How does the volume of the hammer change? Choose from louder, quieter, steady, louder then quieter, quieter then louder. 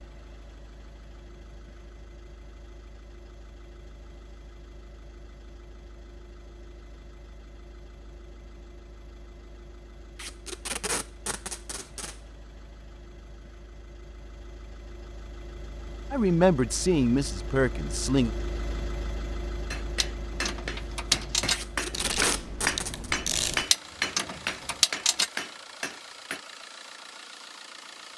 louder then quieter.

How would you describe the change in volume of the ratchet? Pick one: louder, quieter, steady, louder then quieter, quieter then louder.
quieter then louder.